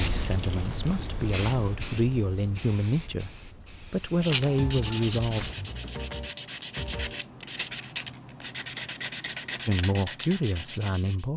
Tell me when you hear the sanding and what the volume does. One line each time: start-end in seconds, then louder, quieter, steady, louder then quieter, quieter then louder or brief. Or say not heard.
4.2-11.2 steady.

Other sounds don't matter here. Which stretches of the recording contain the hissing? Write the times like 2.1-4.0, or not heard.
0.0-5.5.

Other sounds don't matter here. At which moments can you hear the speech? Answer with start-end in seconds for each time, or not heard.
0.0-5.5, 9.7-11.3.